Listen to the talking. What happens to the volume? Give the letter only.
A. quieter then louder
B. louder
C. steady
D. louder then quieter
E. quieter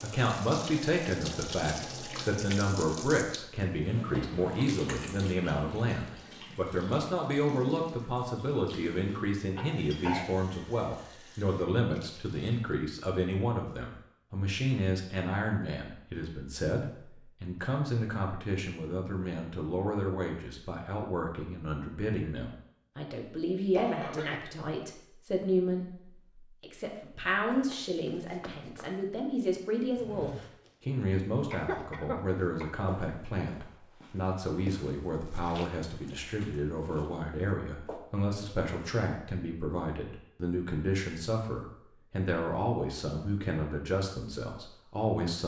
C.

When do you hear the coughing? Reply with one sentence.
You can hear the coughing from 9.6 to 10.3 s, from 23.7 to 24.4 s and from 31.5 to 32.9 s.